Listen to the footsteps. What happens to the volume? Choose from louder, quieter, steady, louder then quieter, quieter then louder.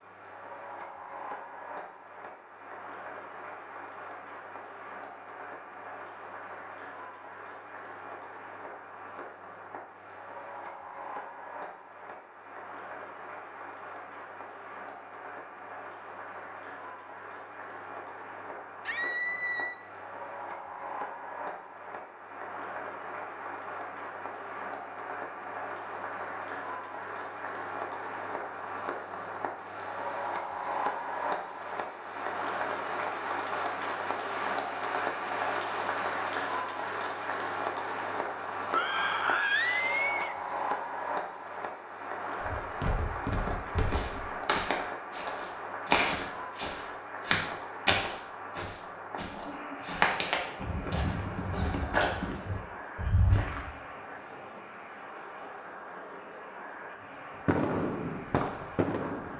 steady.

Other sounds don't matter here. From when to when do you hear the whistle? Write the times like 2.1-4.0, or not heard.
not heard.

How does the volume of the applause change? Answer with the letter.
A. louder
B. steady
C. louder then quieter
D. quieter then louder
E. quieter
C.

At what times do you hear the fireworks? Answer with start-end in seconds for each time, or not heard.
57.5-59.3.